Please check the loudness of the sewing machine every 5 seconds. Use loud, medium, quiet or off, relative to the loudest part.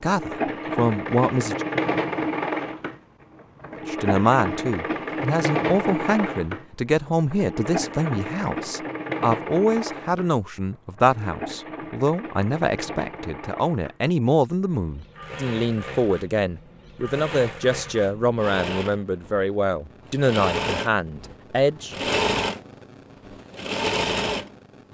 loud, loud, medium, medium, loud.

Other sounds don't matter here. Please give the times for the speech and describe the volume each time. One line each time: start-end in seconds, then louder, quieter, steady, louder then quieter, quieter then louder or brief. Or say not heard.
0.0-1.6 brief
3.8-22.1 steady.